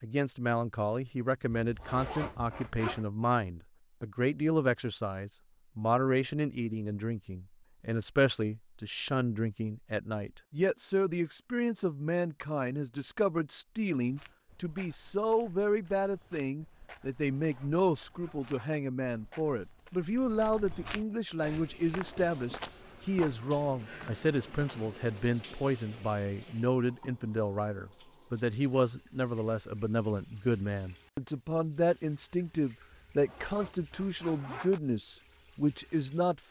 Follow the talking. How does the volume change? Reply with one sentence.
The loudness of the talking stays about the same.